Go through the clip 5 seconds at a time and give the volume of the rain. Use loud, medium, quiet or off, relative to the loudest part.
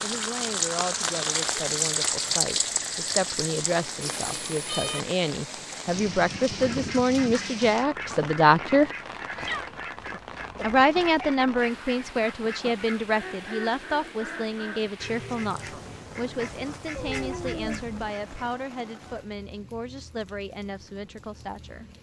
loud, medium, quiet, quiet, quiet.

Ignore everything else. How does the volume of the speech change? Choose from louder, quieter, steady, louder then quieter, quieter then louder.
louder then quieter.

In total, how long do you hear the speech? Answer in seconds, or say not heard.
20 s.